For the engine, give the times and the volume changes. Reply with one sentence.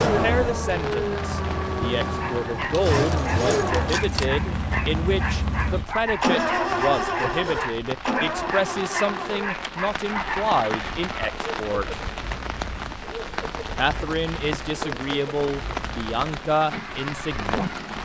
You can hear the engine from 0.0 to 17.9 s, getting quieter.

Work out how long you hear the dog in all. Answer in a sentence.
You can hear the dog for 8 seconds altogether.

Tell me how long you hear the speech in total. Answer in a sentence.
The speech can be heard for 16 seconds in total.